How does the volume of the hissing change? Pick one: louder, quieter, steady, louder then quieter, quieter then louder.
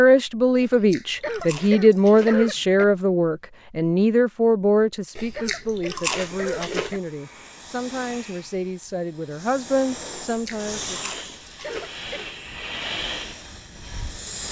louder.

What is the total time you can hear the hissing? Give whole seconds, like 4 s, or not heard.
9 s.